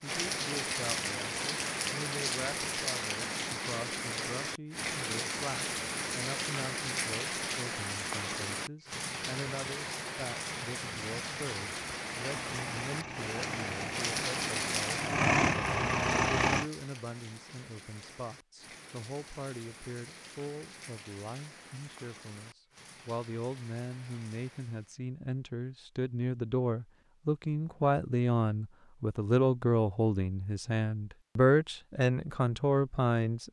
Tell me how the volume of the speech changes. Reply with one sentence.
The loudness of the speech goes up.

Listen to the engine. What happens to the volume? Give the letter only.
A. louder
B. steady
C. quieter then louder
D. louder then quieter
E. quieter
A.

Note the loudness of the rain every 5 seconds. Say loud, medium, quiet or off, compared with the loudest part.
loud, loud, loud, quiet, quiet, off, off.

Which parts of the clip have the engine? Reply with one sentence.
The engine can be heard from 12.2 to 16.7 s.